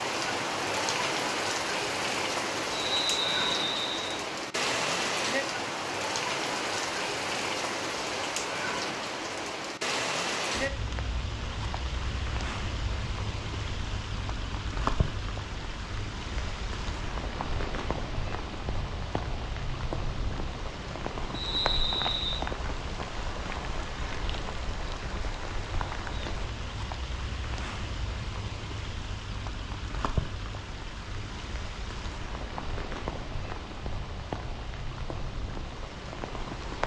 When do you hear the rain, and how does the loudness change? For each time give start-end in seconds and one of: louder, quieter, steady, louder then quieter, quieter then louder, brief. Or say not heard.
0.0-36.8 quieter.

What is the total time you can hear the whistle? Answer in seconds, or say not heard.
3 s.